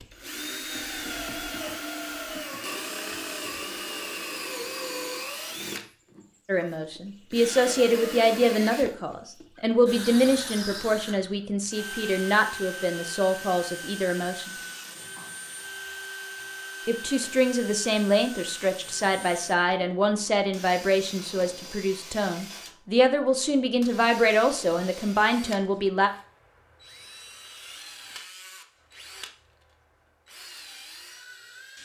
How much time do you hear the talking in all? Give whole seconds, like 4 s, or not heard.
17 s.